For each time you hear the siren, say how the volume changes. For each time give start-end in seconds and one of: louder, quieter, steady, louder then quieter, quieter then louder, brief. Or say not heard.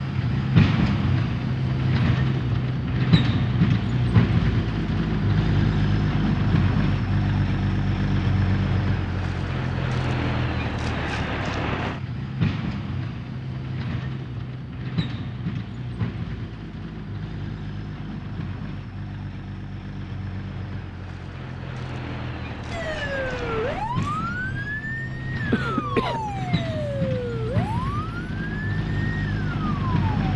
22.7-30.1 quieter.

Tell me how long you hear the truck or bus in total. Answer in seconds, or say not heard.
30 s.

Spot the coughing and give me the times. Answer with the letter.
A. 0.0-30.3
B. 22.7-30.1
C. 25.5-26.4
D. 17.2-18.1
C.